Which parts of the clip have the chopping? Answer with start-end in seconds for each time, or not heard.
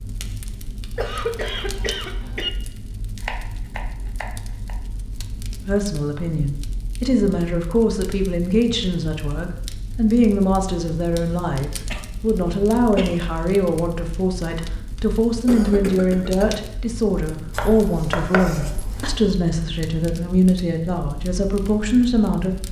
3.2-4.8, 17.5-19.2.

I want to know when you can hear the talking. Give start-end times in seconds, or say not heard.
5.7-22.6.